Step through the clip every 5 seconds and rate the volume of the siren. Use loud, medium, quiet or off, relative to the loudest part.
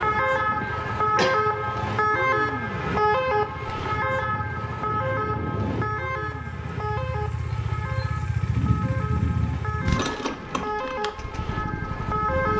loud, medium, medium.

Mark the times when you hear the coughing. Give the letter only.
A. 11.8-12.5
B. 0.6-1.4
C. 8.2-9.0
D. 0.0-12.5
B.